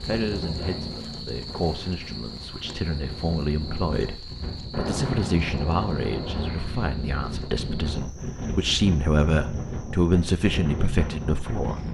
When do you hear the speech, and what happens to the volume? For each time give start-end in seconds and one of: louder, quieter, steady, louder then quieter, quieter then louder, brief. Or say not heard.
0.0-11.8 louder.